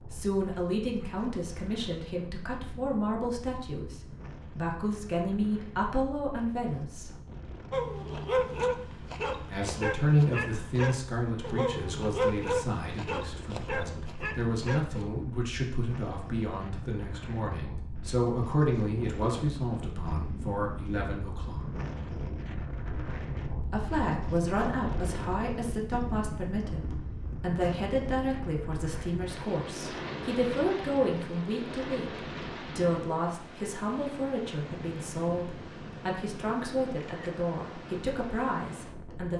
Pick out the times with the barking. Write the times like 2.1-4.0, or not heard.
7.7-15.1.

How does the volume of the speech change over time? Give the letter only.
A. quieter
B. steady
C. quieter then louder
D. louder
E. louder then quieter
B.